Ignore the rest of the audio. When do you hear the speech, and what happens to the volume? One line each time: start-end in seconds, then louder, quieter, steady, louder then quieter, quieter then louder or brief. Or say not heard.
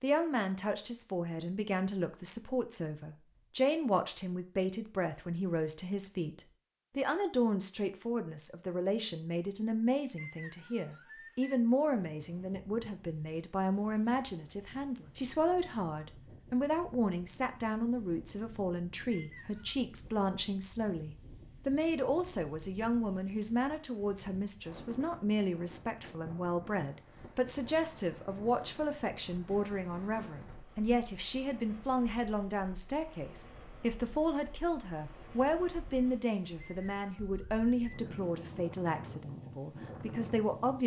0.0-40.8 steady.